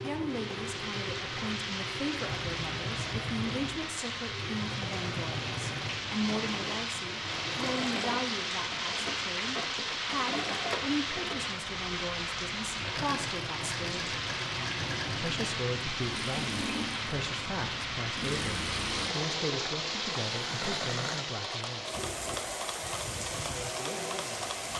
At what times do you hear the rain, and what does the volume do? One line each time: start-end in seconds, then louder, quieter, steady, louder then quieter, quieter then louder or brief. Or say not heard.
0.0-24.7 steady.